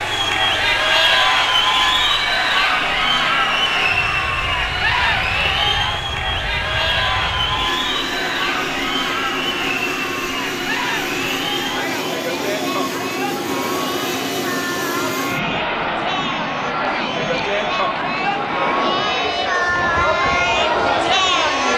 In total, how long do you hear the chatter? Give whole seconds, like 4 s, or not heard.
22 s.